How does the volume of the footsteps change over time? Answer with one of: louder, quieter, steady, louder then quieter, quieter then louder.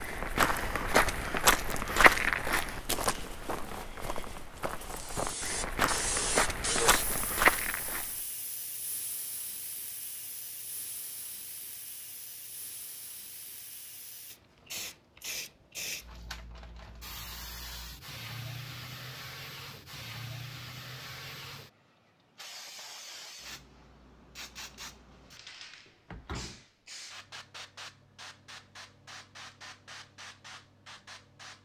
quieter then louder.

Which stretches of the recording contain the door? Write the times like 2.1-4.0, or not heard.
26.1-26.6.